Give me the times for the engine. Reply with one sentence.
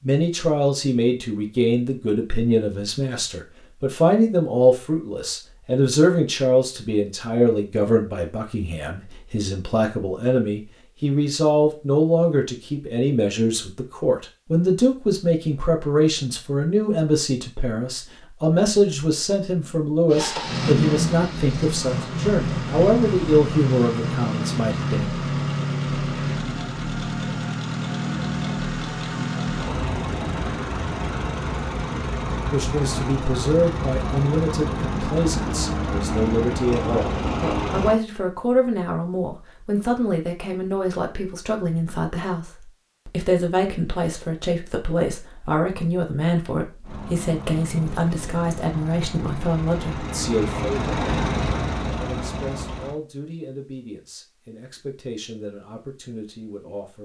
You can hear the engine from 20.1 to 38.0 s and from 46.8 to 53.0 s.